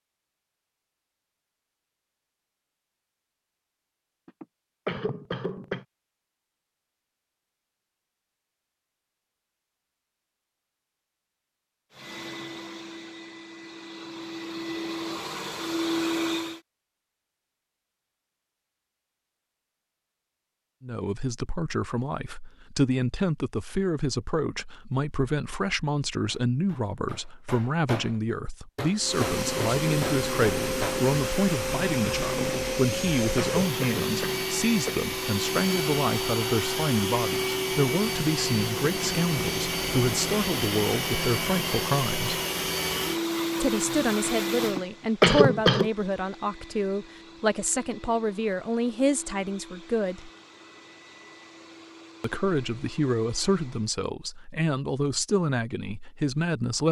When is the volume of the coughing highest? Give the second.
45 s.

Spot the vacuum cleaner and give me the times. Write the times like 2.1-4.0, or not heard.
11.9-16.6, 28.9-54.0.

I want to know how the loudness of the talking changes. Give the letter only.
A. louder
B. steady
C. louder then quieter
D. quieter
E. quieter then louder
B.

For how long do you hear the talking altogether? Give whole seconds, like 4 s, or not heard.
33 s.